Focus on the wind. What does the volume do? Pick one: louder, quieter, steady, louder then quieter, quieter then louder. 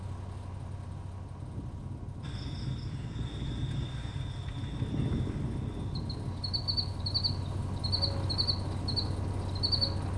louder then quieter.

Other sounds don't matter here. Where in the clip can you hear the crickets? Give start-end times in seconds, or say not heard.
2.2-9.8.